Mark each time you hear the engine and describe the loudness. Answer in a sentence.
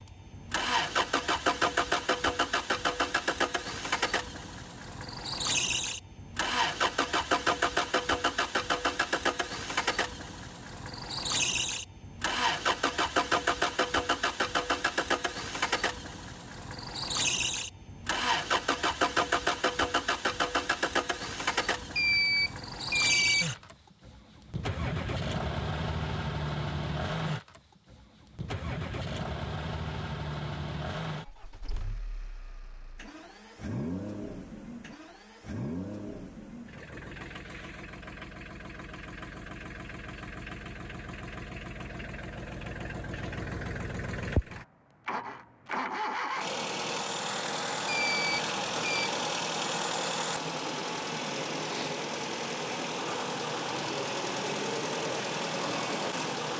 The engine can be heard from 0.0 to 56.5 s, getting quieter then louder.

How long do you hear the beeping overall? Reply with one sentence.
The beeping can be heard for 3 seconds in total.